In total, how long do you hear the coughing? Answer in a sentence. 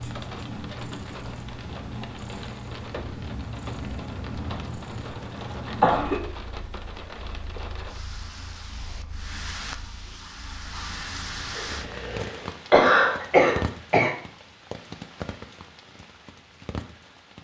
The coughing can be heard for 3 seconds in total.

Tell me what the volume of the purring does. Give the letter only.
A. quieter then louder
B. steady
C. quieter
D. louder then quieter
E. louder
C.